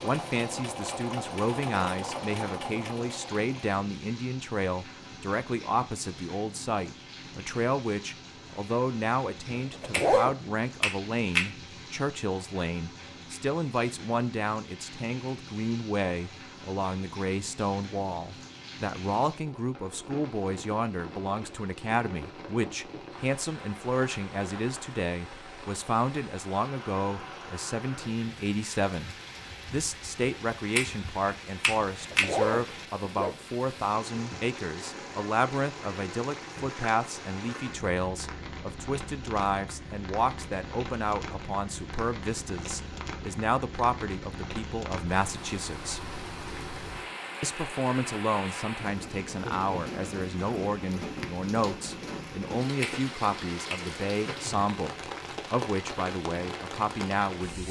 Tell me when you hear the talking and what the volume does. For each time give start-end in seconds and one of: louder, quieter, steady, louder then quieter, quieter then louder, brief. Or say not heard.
0.0-46.0 steady
47.4-57.6 steady.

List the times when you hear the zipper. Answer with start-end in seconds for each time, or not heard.
9.6-10.3, 31.8-33.5.